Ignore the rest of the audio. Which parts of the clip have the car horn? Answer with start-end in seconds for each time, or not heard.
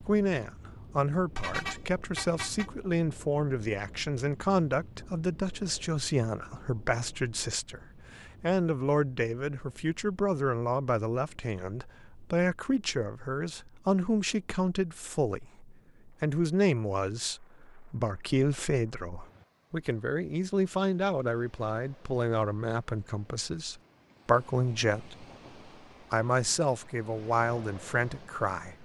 1.4-2.7.